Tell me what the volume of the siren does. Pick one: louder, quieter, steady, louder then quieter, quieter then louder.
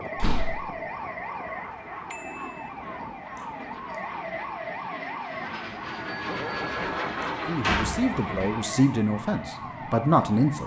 steady.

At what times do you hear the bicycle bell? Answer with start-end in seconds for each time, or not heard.
2.1-2.7, 6.1-7.5.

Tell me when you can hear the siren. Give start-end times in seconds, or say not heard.
0.0-10.6.